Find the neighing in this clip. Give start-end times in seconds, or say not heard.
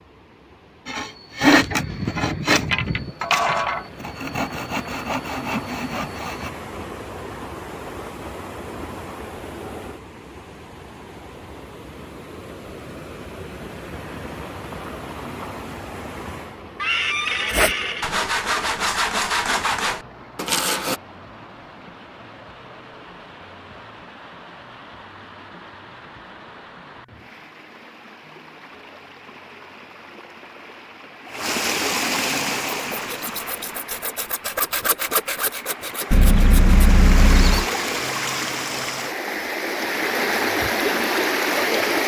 1.6-3.1, 16.8-18.1, 36.1-37.6.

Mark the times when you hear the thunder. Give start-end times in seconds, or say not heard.
not heard.